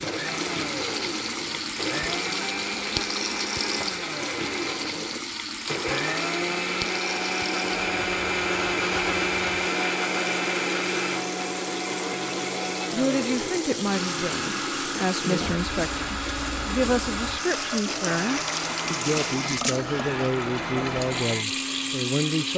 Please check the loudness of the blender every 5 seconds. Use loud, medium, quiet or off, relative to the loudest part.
medium, loud, loud, medium, medium.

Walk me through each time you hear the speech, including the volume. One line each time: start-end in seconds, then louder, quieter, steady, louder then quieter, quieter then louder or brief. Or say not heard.
12.9-22.5 steady.